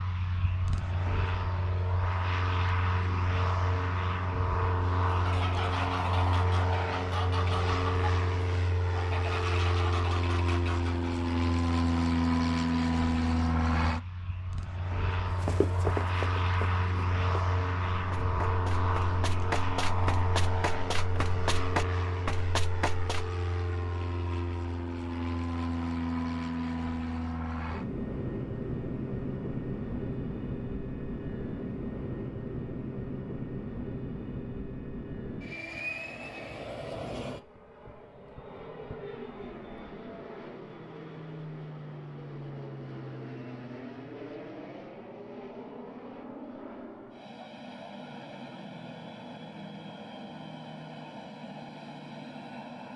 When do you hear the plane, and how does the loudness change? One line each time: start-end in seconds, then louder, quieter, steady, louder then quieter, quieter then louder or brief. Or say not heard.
0.0-52.9 quieter.